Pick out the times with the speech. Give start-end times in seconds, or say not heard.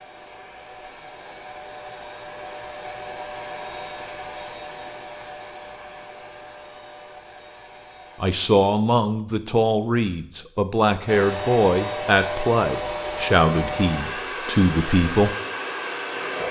8.2-15.3.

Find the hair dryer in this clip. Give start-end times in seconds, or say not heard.
0.0-8.2, 11.1-16.4.